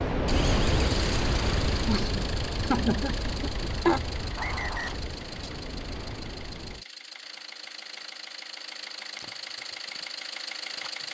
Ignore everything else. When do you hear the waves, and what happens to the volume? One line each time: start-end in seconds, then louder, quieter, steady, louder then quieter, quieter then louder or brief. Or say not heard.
0.0-6.8 quieter.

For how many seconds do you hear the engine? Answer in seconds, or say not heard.
11 s.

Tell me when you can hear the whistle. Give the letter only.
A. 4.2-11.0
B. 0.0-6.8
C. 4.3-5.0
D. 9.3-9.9
C.